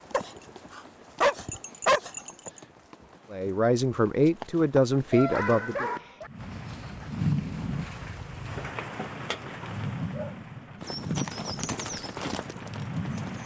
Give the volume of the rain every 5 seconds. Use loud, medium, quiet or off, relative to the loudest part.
off, loud, loud.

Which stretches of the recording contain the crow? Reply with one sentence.
The crow can't be heard in this clip.